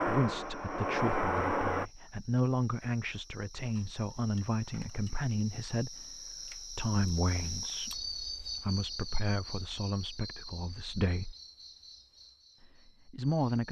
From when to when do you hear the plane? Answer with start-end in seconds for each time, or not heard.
0.0-1.9.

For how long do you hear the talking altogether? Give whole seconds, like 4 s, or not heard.
12 s.